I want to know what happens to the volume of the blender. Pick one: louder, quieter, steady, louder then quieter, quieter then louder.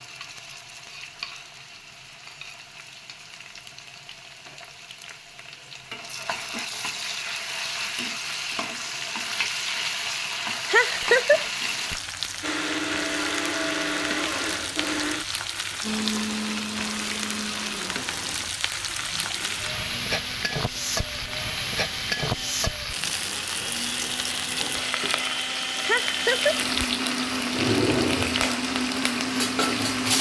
quieter then louder.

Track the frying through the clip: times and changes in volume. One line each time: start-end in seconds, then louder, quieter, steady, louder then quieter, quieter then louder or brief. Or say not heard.
0.0-30.1 louder.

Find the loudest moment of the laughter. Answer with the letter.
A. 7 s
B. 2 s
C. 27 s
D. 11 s
D.